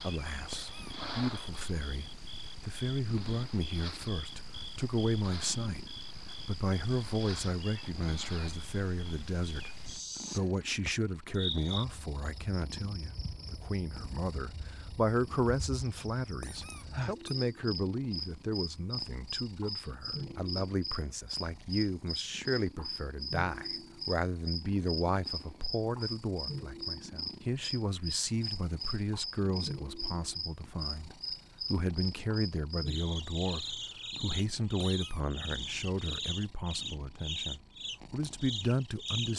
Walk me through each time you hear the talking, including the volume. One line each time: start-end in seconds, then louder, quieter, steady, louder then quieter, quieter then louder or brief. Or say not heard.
0.0-39.3 steady.